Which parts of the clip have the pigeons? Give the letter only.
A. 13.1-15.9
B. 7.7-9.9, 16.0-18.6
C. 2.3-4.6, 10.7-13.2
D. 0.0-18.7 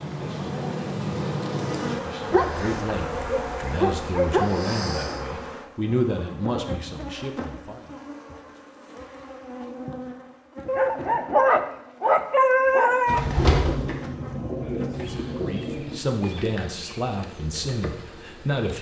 A.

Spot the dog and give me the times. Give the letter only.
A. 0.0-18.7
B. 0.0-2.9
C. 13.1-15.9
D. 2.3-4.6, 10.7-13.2
D.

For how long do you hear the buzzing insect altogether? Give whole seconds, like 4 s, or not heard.
19 s.